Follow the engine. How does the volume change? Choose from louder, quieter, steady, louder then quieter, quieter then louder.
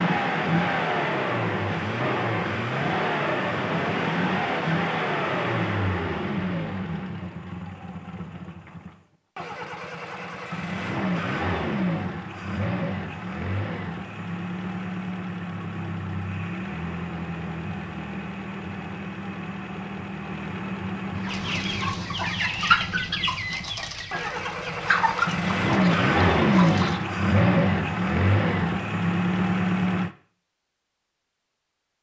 quieter then louder.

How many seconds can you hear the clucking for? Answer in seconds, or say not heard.
6 s.